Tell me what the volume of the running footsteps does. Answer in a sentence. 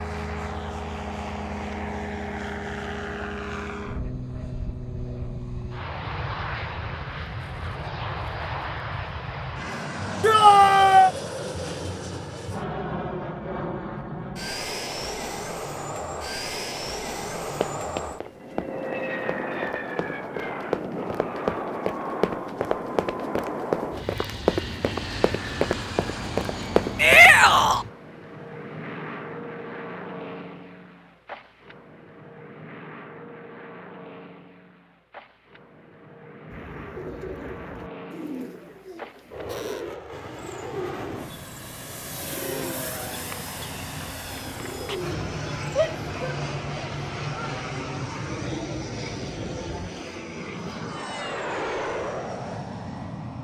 The volume of the running footsteps goes up.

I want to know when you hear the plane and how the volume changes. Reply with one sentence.
The plane can be heard from 0.0 to 53.4 s, getting quieter then louder.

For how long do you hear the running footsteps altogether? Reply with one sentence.
You can hear the running footsteps for 10 seconds altogether.